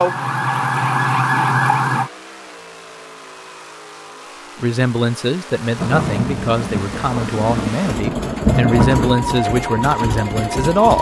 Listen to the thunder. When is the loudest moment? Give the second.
9 s.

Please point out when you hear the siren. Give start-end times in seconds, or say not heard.
0.0-2.1, 8.5-10.9.